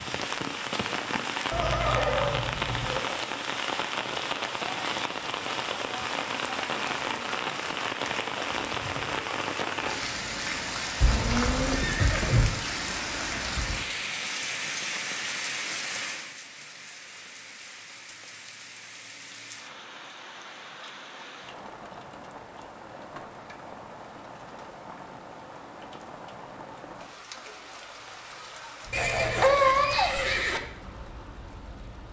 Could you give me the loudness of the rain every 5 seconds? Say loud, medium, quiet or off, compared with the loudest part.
loud, loud, loud, medium, quiet, quiet, quiet.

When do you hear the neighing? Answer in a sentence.
The neighing can be heard from 1.5 to 3.0 s, from 11.0 to 12.5 s and from 28.9 to 30.6 s.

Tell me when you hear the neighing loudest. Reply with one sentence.
The volume of the neighing peaks at 30 seconds.